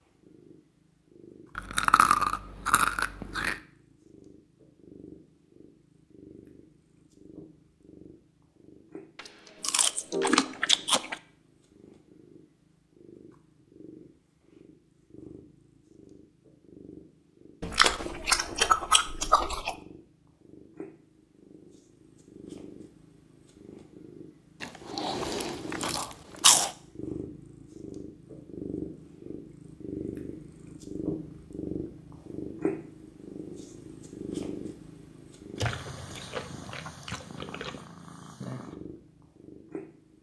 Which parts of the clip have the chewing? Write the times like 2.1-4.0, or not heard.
1.6-3.5, 9.2-11.2, 17.6-19.8, 24.6-26.8, 35.5-37.8.